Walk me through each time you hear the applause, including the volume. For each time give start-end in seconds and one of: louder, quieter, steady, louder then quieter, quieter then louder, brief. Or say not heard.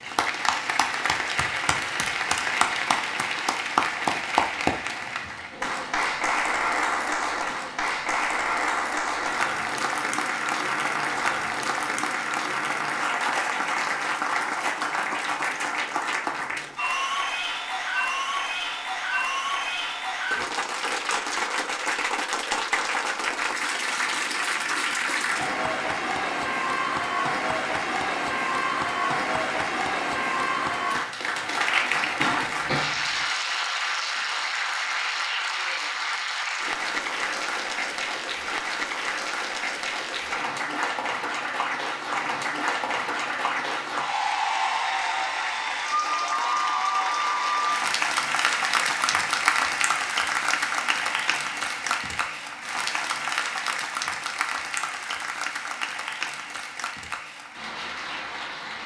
0.0-58.8 steady.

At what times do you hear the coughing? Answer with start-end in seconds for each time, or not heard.
32.2-33.2.